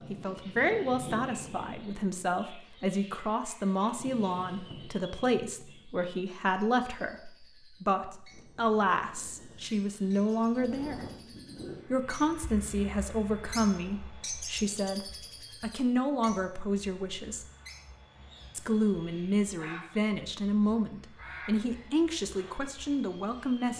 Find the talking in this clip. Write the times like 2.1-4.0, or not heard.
0.1-11.0, 11.9-17.4, 18.6-23.7.